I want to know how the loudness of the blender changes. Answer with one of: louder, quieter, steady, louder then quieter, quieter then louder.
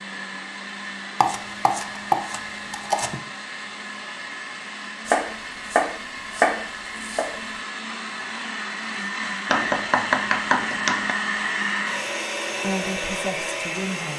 louder.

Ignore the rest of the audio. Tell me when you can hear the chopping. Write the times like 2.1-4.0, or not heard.
1.2-3.2, 5.0-7.3, 9.4-11.2.